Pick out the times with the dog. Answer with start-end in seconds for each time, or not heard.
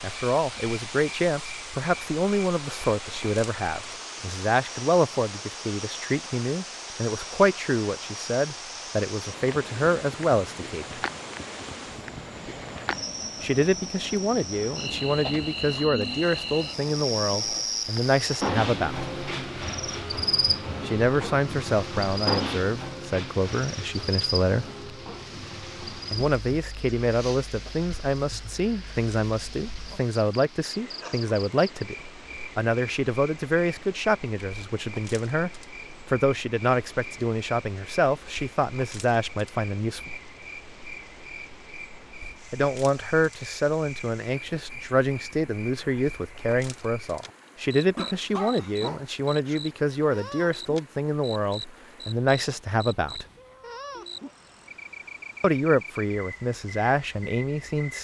48.0-49.5.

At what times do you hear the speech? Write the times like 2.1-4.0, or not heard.
0.0-10.8, 13.4-19.1, 20.9-24.6, 26.1-40.1, 42.5-53.2, 55.4-57.9.